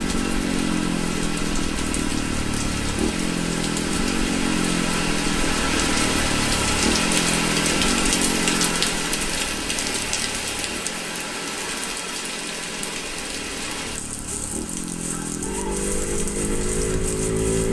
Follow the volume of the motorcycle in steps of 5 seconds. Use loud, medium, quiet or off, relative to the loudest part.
loud, loud, quiet, loud.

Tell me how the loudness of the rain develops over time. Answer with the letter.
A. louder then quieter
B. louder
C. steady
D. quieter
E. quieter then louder
A.